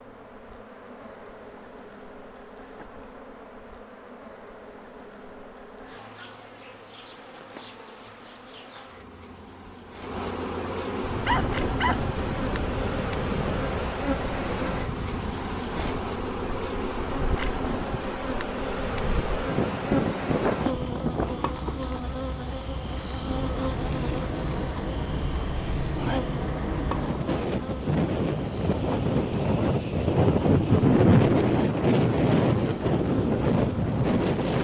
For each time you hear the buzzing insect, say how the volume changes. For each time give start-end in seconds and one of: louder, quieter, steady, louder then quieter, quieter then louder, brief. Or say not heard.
0.0-34.5 louder then quieter.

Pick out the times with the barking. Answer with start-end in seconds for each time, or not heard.
11.1-12.6.